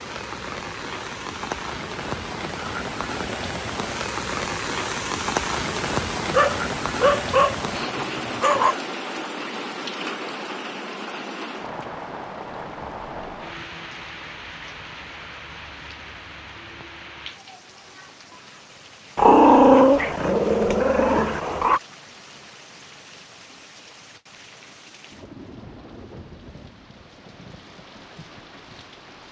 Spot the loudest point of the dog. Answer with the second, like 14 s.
20 s.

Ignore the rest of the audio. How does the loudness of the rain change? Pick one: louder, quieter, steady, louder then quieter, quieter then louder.
quieter.